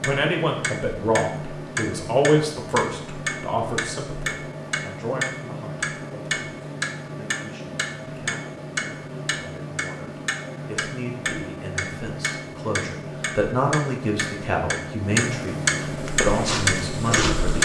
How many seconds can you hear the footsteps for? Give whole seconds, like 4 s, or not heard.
2 s.